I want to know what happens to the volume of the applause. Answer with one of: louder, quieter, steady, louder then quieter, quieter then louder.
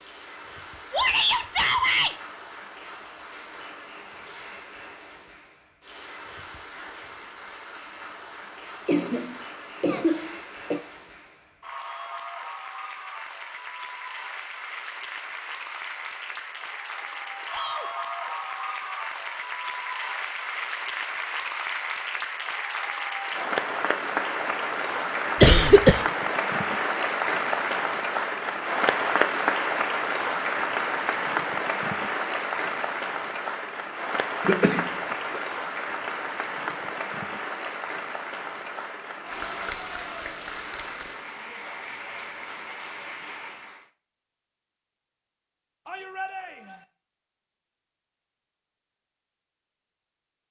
louder then quieter.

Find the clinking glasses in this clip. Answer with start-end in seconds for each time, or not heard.
not heard.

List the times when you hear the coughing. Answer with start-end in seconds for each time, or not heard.
8.2-10.8, 25.4-26.1, 34.5-35.4.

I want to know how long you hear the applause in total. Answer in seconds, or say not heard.
44 s.